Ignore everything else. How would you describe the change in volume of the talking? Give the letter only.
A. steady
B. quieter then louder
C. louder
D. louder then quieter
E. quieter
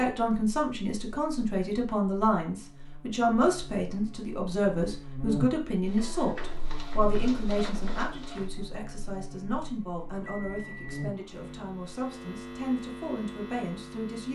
E.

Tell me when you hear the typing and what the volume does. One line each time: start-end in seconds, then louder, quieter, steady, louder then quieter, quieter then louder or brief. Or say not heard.
not heard.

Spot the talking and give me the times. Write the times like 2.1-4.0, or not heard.
0.0-14.3.